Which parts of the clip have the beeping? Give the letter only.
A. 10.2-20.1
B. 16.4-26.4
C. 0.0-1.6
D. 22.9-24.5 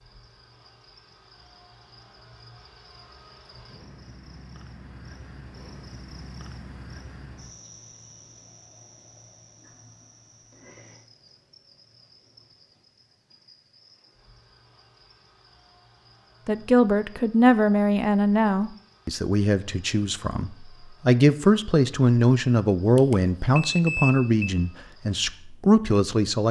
D.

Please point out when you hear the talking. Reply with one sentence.
You can hear the talking from 16.4 to 26.4 s.